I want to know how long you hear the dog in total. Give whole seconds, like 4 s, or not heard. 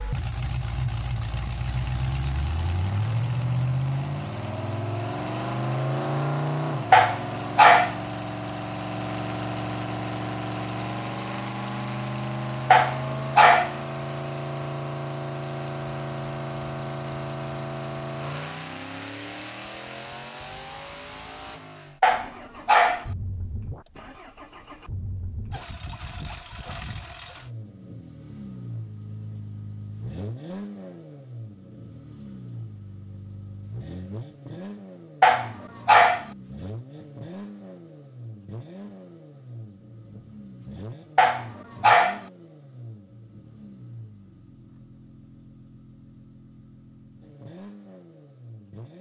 5 s.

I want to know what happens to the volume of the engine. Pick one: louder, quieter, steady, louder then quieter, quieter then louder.
quieter.